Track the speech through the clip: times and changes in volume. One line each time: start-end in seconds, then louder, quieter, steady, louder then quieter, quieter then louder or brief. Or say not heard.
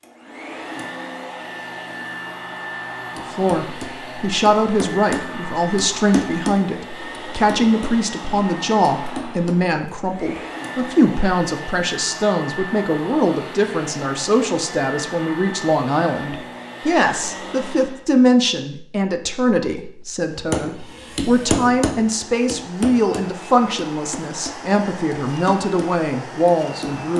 3.1-27.1 steady.